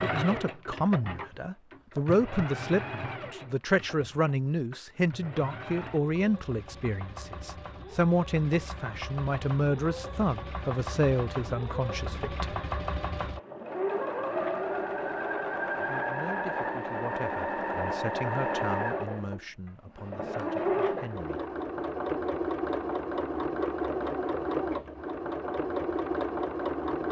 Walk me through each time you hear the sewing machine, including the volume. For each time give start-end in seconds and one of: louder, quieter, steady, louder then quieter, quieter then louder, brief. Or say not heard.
0.0-27.0 louder.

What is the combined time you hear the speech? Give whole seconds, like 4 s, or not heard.
18 s.